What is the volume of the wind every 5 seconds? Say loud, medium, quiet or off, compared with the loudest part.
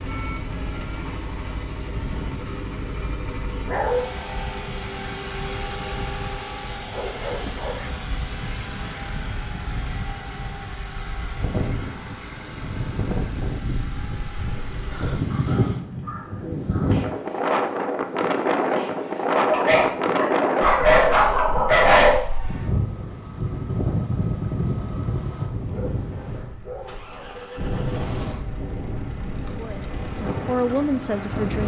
quiet, quiet, medium, loud, loud, medium, medium.